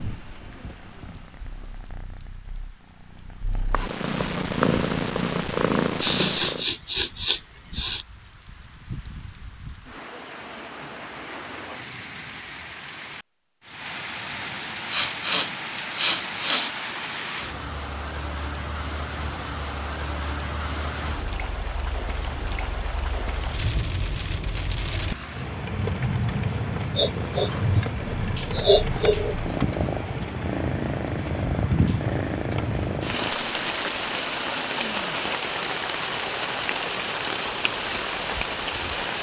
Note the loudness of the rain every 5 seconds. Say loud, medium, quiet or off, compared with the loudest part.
quiet, quiet, medium, medium, medium, loud, loud, loud.